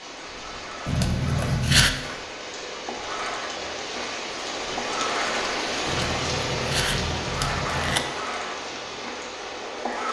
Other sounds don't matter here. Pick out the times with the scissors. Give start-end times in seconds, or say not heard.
0.8-1.9, 5.8-8.1.